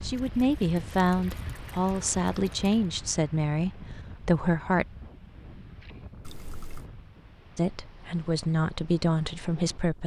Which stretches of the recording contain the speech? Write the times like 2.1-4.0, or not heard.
0.0-4.8, 7.5-10.0.